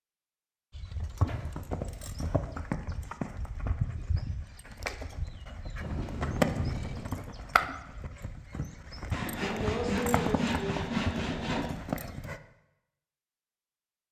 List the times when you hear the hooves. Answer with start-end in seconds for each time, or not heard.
0.7-12.4.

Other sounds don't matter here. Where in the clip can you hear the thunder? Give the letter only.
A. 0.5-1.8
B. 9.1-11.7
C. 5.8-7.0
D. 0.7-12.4
C.